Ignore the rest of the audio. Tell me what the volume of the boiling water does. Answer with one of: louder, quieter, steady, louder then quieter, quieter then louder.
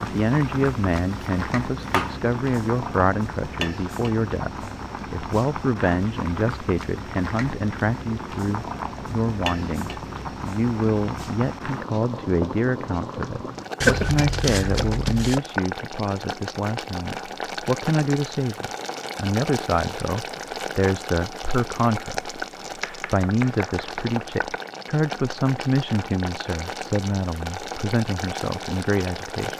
steady.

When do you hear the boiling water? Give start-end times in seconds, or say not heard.
0.0-29.5.